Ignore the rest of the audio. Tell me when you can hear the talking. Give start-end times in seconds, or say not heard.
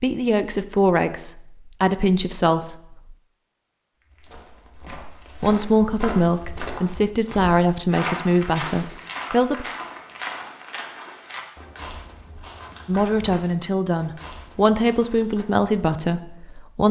0.0-3.0, 5.4-9.7, 12.8-16.8.